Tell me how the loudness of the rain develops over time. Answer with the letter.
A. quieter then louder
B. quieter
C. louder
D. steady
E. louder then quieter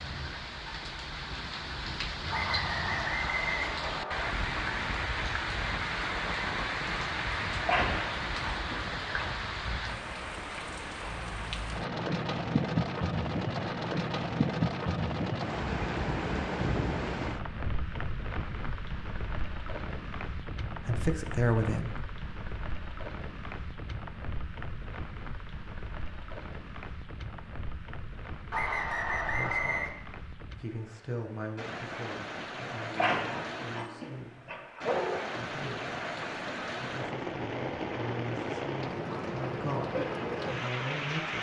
A.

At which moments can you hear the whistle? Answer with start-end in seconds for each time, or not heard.
2.3-4.3, 28.5-29.9.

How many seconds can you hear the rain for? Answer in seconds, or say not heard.
41 s.